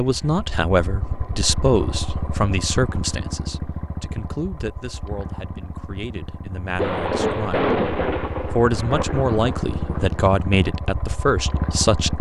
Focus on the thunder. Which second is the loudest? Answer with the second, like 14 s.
8 s.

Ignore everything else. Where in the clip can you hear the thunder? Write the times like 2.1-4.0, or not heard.
6.8-10.2.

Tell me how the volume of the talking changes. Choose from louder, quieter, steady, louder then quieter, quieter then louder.
quieter then louder.